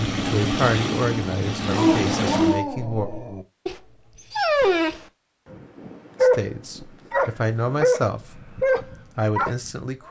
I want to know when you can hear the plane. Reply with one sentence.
The plane can be heard from 0.0 to 2.6 s.